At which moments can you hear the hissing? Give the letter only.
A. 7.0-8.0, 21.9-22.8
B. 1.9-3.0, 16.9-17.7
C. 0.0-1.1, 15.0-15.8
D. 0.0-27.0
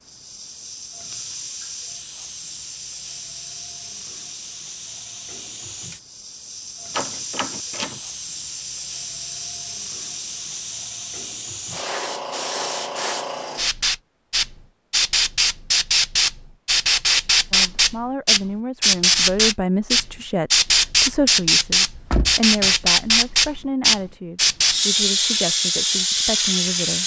D.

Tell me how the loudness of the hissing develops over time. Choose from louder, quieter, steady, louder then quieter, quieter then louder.
louder.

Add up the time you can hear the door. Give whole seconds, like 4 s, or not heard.
2 s.